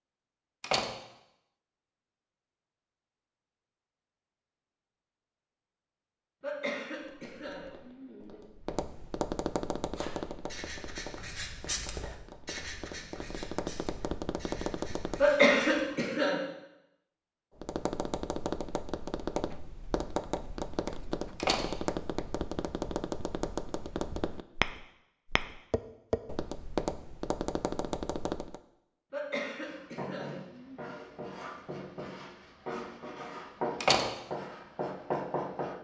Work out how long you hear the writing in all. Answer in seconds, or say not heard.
12 s.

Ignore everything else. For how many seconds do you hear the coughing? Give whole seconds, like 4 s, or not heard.
5 s.